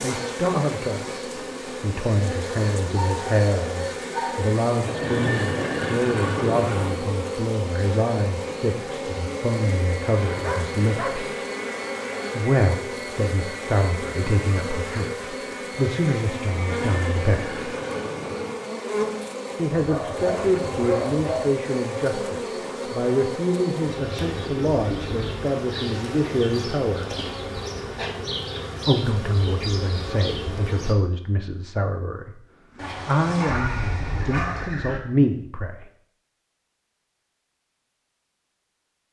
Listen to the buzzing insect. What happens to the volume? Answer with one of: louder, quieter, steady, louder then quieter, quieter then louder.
steady.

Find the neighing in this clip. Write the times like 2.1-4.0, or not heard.
4.8-6.9, 16.5-18.6, 33.5-35.0.